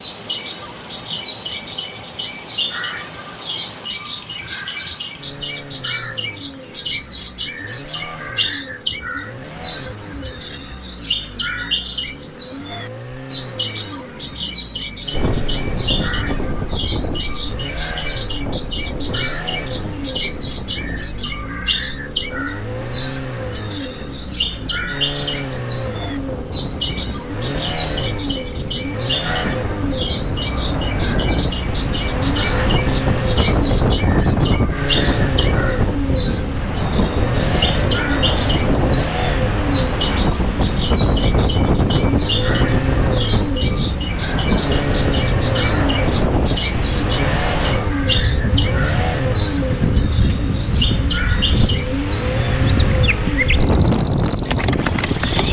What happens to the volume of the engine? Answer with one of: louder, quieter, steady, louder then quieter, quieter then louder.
louder.